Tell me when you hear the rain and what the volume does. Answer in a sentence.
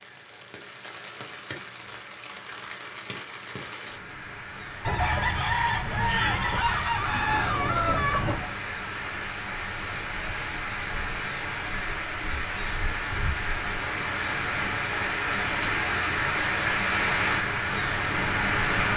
You can hear the rain from 0.0 to 18.9 s, getting louder.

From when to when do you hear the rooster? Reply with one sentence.
The rooster can be heard from 4.8 to 8.5 s.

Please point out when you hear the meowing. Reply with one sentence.
You can't hear the meowing here.